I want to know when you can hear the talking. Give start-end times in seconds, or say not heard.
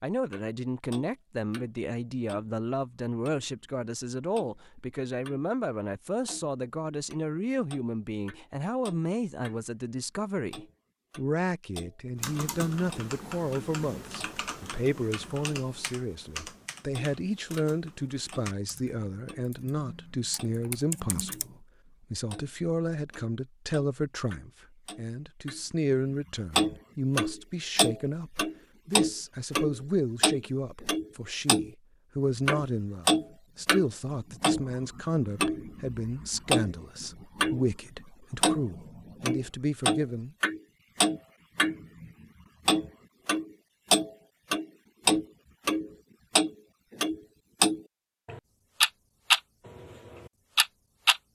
0.0-40.4.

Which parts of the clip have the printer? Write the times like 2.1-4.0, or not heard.
not heard.